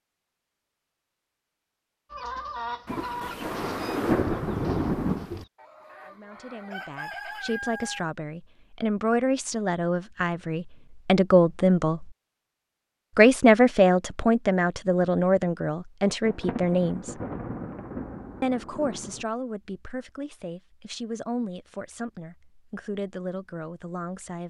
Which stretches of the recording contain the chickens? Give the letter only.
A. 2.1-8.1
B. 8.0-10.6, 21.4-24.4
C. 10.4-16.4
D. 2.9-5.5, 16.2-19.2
A.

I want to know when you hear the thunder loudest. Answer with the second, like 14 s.
4 s.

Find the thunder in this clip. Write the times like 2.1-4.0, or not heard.
2.9-5.5, 16.2-19.2.